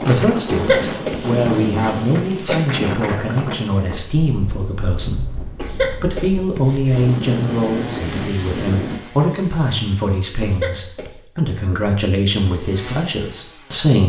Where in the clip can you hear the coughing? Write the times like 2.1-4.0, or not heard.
0.5-2.6, 5.5-7.2, 10.4-11.2.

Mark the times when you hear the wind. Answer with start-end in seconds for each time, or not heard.
0.0-9.0.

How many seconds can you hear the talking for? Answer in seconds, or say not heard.
14 s.